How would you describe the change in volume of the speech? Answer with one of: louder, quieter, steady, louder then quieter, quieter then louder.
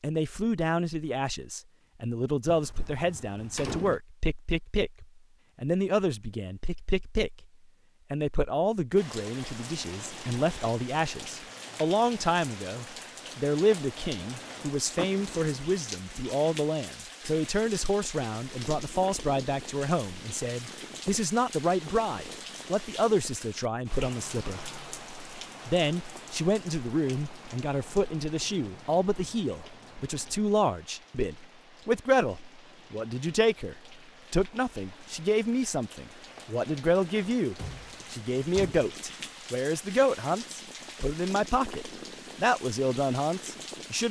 steady.